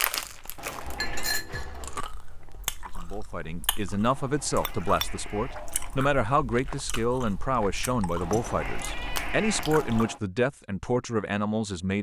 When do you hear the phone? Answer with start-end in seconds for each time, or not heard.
not heard.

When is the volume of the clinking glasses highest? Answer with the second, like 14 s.
1 s.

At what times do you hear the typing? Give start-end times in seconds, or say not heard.
not heard.